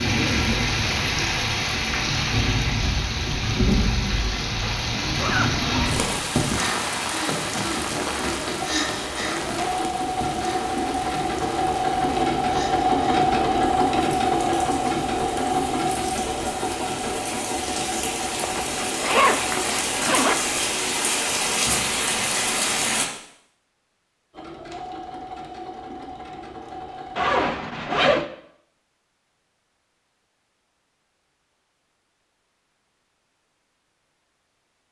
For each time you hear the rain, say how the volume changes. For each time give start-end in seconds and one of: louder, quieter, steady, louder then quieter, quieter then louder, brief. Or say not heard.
0.0-23.1 quieter then louder.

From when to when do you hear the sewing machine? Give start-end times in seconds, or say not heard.
7.3-20.8, 24.3-27.4.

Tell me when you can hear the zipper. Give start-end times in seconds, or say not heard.
4.6-6.0, 18.4-20.4, 27.1-28.2.